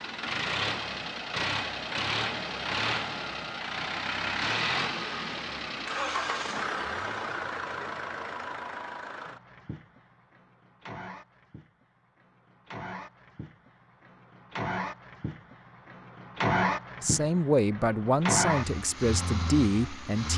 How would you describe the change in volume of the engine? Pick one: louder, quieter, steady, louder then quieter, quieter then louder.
quieter then louder.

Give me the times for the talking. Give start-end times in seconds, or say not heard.
17.0-20.3.